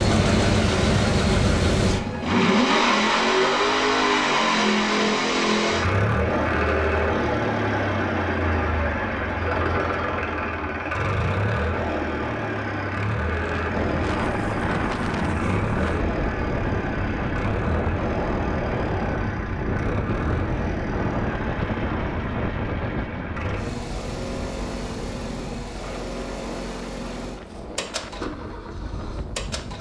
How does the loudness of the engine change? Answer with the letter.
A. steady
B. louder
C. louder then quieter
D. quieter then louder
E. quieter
E.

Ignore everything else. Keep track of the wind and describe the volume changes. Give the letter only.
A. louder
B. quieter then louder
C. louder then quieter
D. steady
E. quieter
E.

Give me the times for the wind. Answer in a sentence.
The wind can be heard from 13.3 to 29.7 s.